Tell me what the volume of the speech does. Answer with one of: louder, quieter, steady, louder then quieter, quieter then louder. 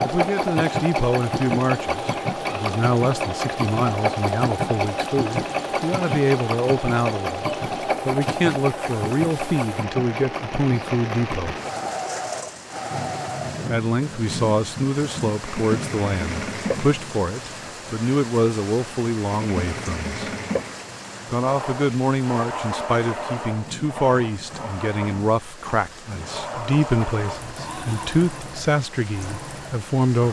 steady.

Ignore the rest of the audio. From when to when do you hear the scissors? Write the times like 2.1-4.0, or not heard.
not heard.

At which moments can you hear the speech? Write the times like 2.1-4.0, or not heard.
0.0-11.6, 13.7-20.3, 21.2-30.2.